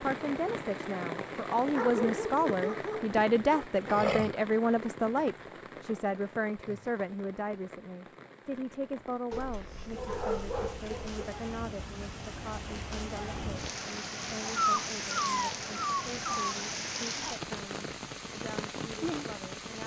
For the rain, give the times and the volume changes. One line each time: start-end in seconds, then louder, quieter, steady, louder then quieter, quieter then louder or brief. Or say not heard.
0.0-19.8 quieter then louder.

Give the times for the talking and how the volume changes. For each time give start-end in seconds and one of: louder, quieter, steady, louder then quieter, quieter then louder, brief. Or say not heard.
0.0-19.8 quieter.